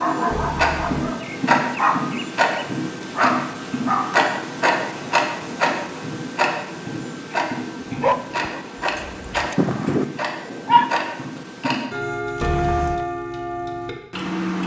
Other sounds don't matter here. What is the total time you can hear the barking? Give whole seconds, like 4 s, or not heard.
7 s.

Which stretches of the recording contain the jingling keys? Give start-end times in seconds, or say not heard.
0.3-0.9, 12.4-13.1.